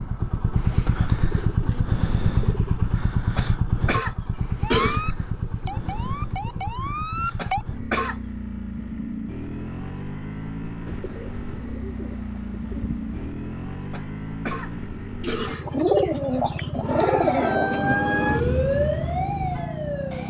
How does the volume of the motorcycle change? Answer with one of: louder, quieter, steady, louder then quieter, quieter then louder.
quieter.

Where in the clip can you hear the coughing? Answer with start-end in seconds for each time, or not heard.
3.4-5.0, 7.3-8.2, 13.9-15.7.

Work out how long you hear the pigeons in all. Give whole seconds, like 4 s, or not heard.
10 s.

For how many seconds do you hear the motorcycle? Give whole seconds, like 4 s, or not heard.
20 s.